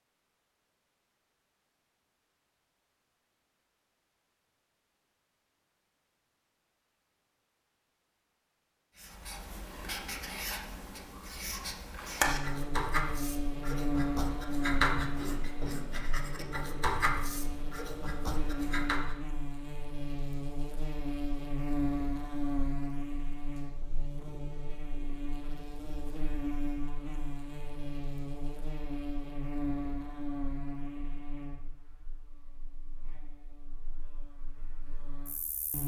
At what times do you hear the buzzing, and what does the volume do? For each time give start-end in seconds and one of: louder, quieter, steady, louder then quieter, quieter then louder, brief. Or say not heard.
12.2-35.8 quieter.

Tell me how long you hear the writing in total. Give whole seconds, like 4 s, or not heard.
10 s.